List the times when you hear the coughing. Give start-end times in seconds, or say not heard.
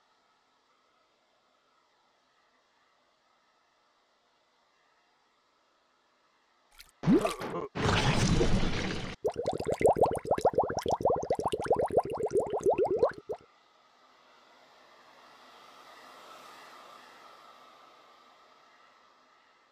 7.0-8.0.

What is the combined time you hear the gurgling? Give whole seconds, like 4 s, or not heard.
6 s.